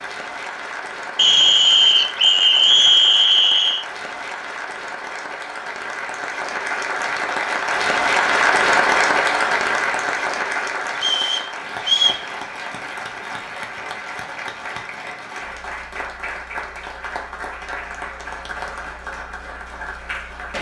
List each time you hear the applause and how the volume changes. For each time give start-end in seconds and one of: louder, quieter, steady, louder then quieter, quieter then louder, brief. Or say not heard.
0.0-20.5 louder then quieter.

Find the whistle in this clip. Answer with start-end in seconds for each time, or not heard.
1.1-3.9, 11.0-12.2.